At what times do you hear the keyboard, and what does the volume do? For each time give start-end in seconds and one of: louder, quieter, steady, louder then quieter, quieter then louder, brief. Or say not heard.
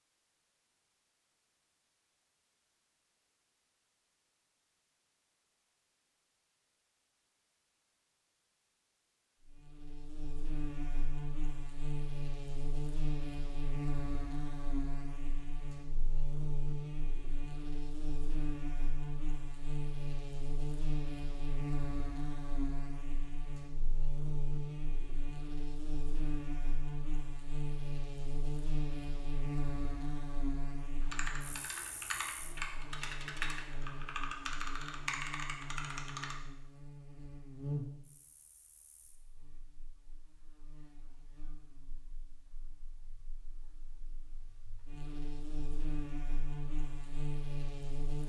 31.0-36.4 steady.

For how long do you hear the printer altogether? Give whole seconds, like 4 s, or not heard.
not heard.